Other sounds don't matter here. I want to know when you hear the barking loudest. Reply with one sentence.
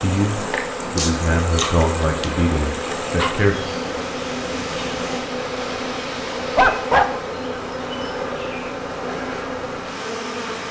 The volume of the barking peaks at 7 seconds.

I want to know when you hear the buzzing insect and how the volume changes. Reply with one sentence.
The buzzing insect can be heard from 0.0 to 10.6 s, at a steady volume.